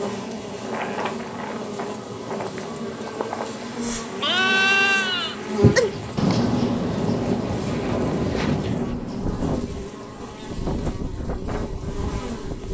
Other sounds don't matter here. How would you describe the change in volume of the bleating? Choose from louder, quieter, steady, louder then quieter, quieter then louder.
quieter.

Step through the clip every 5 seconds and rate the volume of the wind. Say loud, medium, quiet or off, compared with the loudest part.
medium, loud, loud.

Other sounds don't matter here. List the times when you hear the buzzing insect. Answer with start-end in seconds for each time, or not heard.
0.0-12.6.